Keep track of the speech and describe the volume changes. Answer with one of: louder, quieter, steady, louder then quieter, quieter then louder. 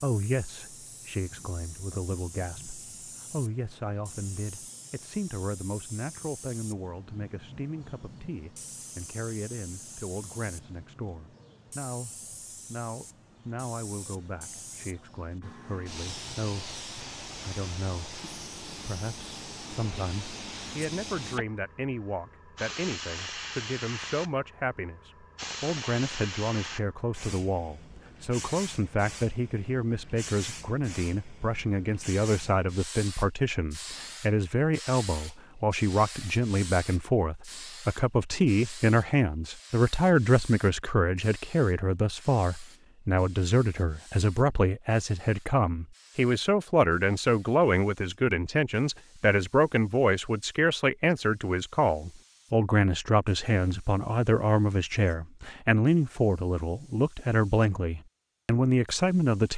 louder.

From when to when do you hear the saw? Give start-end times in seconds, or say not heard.
not heard.